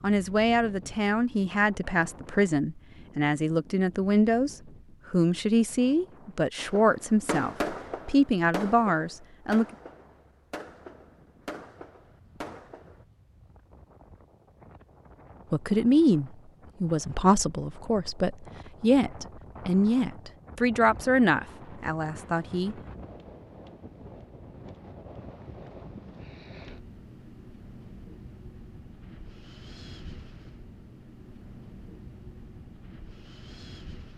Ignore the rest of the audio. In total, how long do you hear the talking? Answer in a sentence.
The talking can be heard for 17 seconds in total.